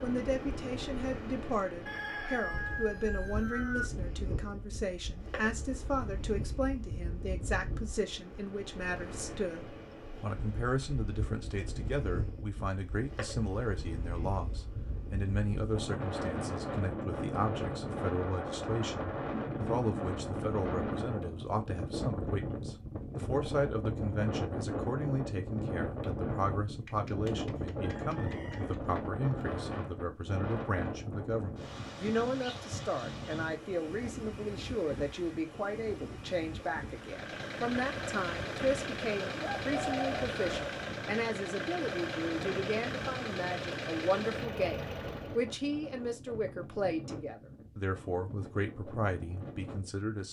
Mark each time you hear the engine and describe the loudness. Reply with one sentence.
You can hear the engine from 36.9 to 45.5 s, at a steady volume.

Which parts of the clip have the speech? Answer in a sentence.
The speech can be heard from 0.0 to 50.2 s.